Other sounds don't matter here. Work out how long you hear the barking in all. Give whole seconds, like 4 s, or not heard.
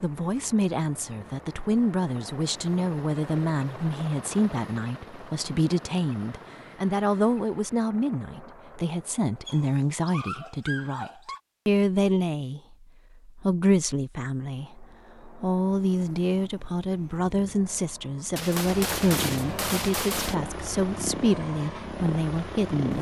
2 s.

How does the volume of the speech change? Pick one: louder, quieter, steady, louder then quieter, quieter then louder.
steady.